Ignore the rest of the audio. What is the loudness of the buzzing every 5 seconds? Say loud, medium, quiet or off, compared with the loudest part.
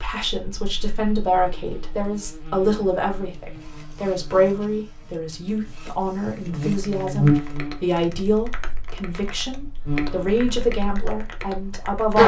quiet, loud, loud.